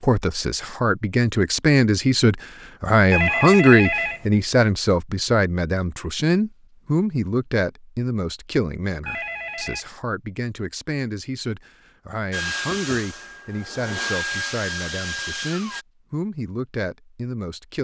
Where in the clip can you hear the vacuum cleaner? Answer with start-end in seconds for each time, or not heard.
12.3-15.8.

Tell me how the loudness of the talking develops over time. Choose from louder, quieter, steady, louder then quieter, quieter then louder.
quieter.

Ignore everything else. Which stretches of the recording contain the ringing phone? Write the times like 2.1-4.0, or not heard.
3.1-4.2, 9.1-9.8.